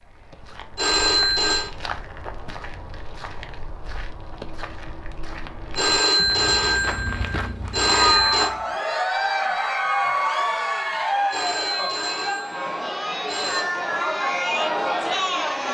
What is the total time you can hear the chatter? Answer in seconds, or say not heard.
8 s.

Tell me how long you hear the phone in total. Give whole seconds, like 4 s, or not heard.
6 s.